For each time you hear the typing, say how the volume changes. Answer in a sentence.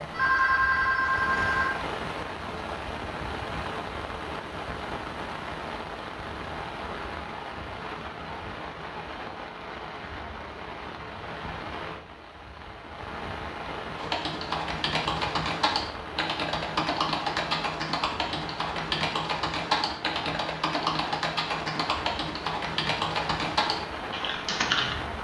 The typing can be heard from 13.9 to 24.9 s, at a steady volume.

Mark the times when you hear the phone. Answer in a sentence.
The phone can be heard from 0.1 to 1.7 s.